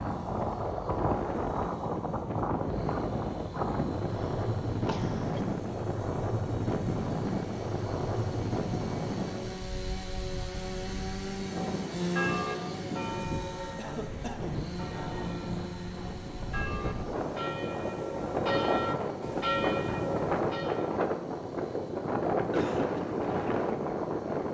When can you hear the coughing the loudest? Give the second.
23 s.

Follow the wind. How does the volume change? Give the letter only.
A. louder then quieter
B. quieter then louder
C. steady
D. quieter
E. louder
B.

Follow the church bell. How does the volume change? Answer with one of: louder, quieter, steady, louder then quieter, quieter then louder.
quieter then louder.